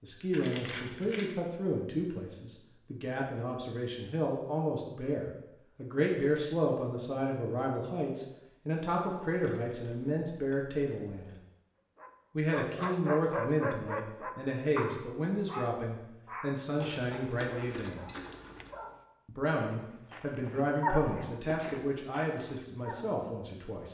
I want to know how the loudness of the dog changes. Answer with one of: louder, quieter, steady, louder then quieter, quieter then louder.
quieter then louder.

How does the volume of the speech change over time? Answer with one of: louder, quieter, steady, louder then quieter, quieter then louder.
steady.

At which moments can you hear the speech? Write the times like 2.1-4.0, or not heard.
0.0-11.3, 12.3-18.1, 19.2-23.9.